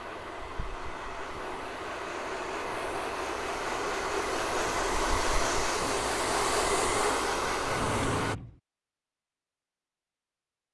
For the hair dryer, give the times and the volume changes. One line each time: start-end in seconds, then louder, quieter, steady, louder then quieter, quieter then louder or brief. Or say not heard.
0.0-8.3 louder.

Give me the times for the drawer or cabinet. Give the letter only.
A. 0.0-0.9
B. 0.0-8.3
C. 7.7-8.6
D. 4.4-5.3
C.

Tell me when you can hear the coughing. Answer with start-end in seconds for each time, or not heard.
not heard.